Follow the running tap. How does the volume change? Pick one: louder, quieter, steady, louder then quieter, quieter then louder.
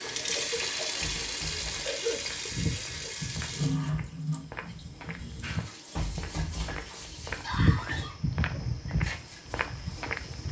quieter.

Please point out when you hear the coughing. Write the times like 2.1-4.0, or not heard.
0.1-2.2, 7.4-8.9.